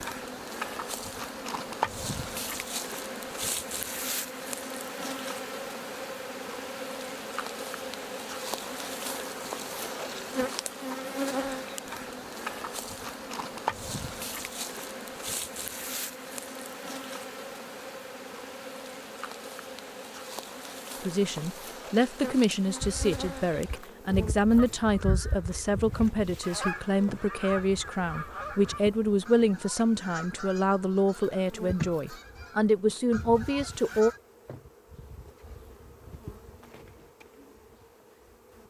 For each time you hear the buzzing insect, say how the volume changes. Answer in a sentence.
You can hear the buzzing insect from 0.0 to 38.6 s, getting quieter.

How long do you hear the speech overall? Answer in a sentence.
You can hear the speech for 13 seconds altogether.